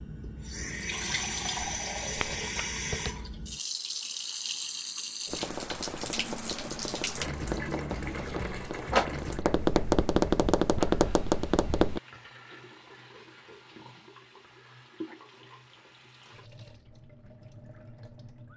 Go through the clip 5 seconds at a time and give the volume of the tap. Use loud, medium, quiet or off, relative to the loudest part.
loud, loud, quiet, quiet.